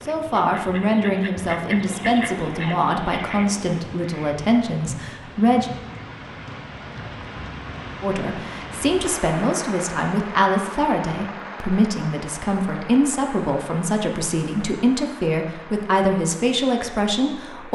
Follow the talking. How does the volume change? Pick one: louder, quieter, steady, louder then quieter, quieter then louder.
steady.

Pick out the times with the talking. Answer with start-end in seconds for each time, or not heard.
0.1-5.7, 8.0-17.6.